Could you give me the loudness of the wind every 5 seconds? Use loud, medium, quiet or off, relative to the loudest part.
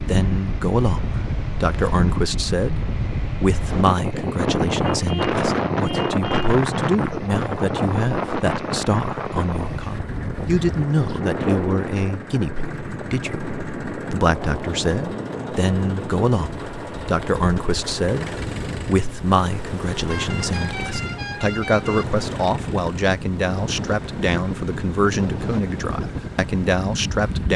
loud, loud, medium, medium, medium, medium.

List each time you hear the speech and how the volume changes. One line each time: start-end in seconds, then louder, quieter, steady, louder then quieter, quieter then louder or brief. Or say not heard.
0.0-27.5 steady.